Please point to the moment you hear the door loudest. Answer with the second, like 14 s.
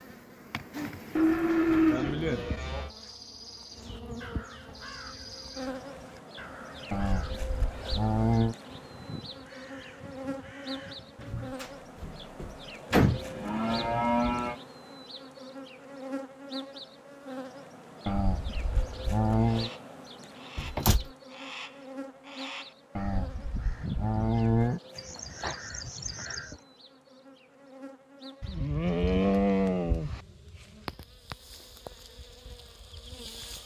13 s.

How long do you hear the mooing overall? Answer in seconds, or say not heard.
10 s.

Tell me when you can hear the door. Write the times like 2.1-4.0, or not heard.
11.2-13.2, 20.6-21.1.